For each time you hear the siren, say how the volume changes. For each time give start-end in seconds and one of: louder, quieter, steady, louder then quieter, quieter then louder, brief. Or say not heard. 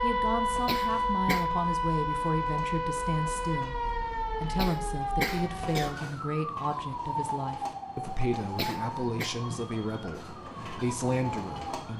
0.0-11.9 quieter.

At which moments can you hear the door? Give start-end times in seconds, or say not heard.
not heard.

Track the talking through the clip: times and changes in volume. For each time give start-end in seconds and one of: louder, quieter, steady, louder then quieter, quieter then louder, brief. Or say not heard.
0.0-11.9 steady.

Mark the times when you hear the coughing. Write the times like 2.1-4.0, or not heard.
0.7-1.4, 4.5-6.0, 8.6-9.3.